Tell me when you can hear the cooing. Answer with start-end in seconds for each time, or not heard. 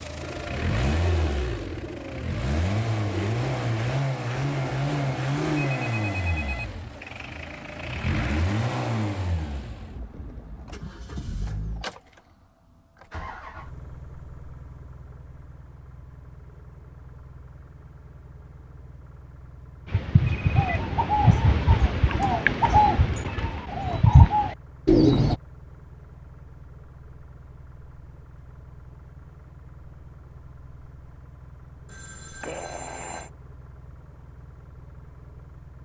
0.2-5.7, 19.9-25.4.